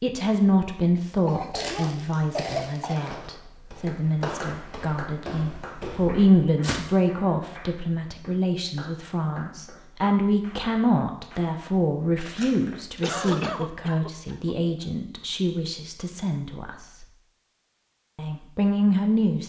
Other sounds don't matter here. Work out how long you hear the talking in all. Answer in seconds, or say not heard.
18 s.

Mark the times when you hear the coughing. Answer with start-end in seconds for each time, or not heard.
1.2-3.0, 13.0-14.6.